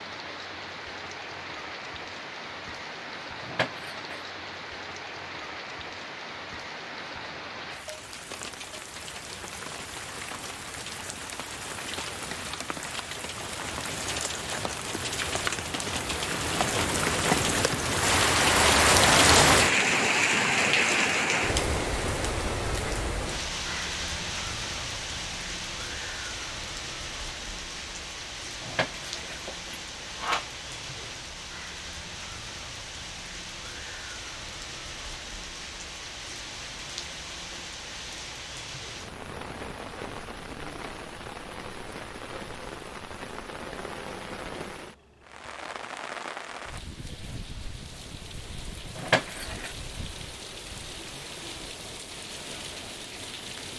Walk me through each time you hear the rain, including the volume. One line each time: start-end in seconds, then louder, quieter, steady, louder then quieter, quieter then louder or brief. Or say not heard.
0.0-53.7 louder then quieter.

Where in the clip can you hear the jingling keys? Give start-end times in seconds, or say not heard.
3.4-4.2, 28.6-30.4, 49.0-49.8.